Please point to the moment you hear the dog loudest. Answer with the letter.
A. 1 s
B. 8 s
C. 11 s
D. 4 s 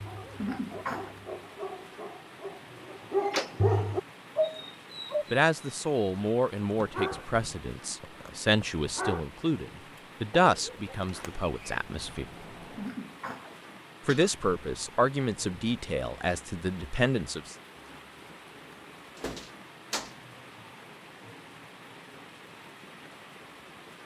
D.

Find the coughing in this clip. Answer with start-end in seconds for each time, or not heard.
0.3-1.1, 12.8-14.3.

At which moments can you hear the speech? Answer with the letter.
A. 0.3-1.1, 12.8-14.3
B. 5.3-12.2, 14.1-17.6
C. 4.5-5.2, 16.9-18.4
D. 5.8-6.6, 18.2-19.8
B.